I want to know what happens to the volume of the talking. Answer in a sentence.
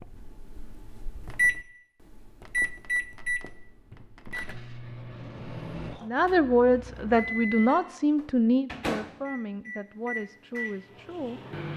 The volume of the talking goes down.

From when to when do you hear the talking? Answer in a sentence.
The talking can be heard from 6.0 to 11.6 s.